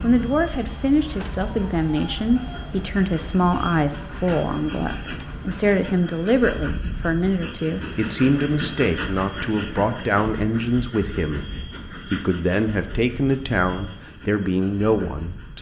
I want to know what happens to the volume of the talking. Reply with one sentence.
The loudness of the talking stays about the same.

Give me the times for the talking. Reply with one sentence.
The talking can be heard from 0.0 to 15.5 s.